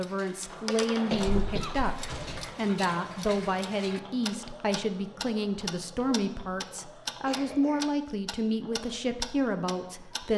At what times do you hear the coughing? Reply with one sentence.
You can hear the coughing from 1.1 to 2.5 s and from 7.2 to 7.8 s.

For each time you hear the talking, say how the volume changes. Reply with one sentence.
The talking can be heard from 0.0 to 10.3 s, at a steady volume.